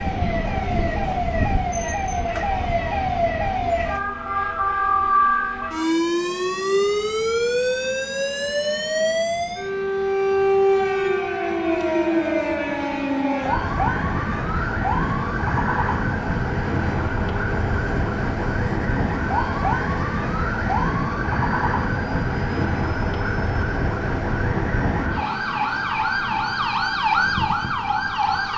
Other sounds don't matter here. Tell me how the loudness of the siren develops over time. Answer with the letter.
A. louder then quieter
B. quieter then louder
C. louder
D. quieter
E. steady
E.